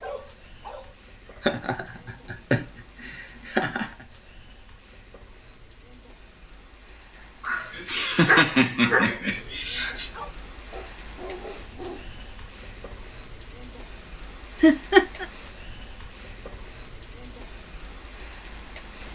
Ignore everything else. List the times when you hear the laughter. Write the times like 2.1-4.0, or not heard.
1.4-3.9, 7.4-10.1, 14.6-15.2.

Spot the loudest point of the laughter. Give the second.
15 s.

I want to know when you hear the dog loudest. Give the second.
8 s.